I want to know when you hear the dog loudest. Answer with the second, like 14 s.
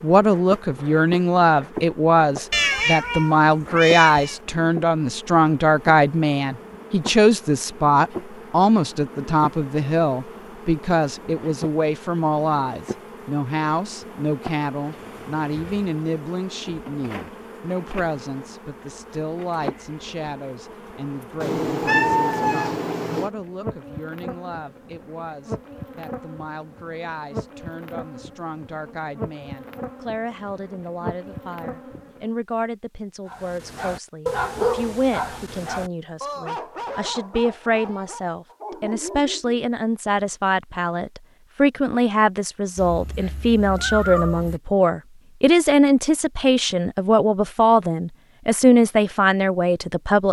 35 s.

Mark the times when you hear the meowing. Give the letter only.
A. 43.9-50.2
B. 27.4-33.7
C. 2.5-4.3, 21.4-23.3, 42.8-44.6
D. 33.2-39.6
C.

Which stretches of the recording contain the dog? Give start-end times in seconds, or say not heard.
33.2-39.6.